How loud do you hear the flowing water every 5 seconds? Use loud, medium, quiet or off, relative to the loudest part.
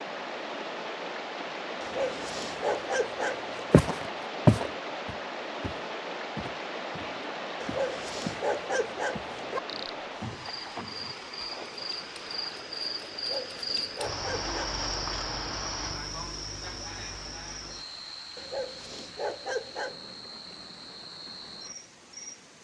loud, loud, medium, quiet, quiet.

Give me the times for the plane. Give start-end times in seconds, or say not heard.
not heard.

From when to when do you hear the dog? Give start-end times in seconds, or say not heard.
1.8-3.8, 7.6-9.6, 13.2-14.6, 18.4-20.1.